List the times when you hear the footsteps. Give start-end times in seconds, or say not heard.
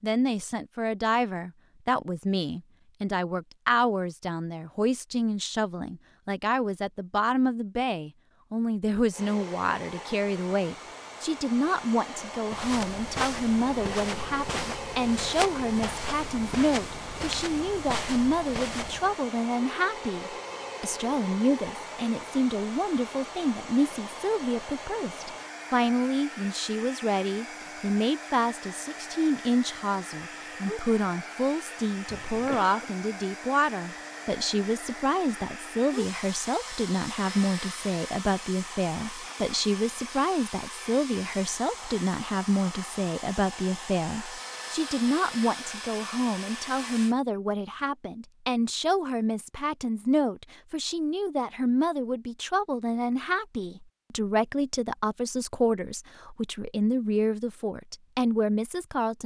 12.4-19.2.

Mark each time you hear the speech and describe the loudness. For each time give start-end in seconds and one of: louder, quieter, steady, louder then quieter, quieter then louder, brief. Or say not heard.
0.0-59.2 steady.